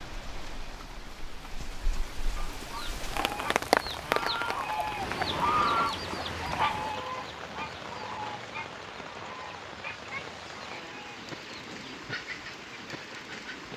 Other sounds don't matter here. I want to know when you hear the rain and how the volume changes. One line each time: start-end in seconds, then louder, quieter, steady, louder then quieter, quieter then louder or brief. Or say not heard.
0.0-13.7 louder then quieter.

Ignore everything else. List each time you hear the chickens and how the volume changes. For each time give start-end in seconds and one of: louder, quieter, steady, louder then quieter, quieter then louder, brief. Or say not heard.
1.9-13.6 louder then quieter.